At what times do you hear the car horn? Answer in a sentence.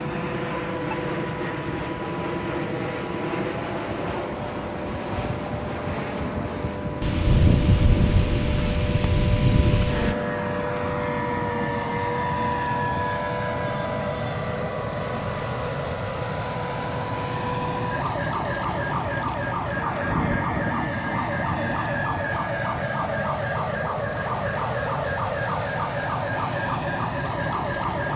The car horn can't be heard in this clip.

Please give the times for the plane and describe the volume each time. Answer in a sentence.
You can hear the plane from 0.0 to 28.1 s, at a steady volume.